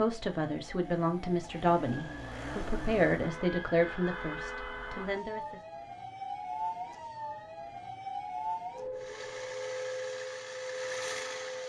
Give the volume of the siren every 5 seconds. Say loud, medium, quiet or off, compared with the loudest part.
medium, loud, loud.